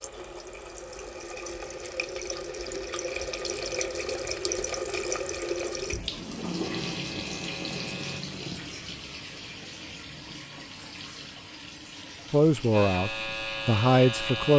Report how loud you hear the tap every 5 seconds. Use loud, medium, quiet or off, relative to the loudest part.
loud, loud, medium.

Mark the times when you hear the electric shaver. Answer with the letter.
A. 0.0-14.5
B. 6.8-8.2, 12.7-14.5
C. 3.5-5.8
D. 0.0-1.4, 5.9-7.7
B.